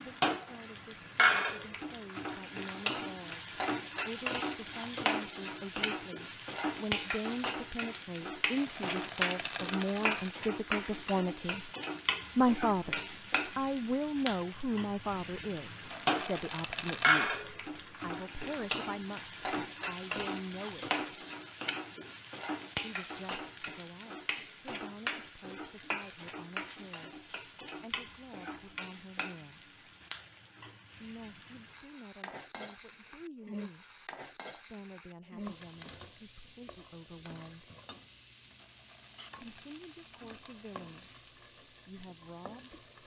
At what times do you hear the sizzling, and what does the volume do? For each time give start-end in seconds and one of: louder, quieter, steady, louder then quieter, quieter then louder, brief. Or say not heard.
0.0-43.0 quieter.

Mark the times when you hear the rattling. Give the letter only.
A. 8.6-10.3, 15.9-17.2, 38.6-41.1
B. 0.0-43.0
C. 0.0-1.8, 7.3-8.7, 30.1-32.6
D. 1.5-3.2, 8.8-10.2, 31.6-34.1
A.